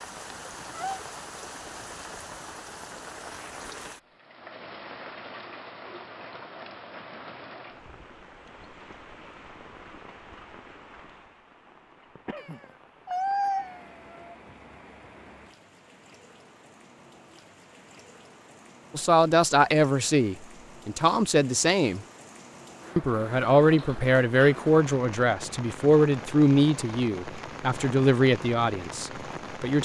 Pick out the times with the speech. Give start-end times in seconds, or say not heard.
18.9-22.1, 22.9-29.7.